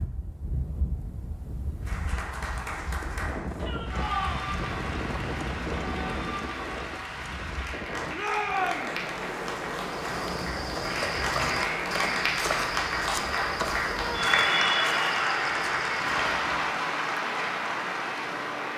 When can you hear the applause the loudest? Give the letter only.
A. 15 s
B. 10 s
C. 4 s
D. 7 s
A.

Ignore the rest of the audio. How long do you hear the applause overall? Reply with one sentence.
The applause can be heard for 17 seconds in total.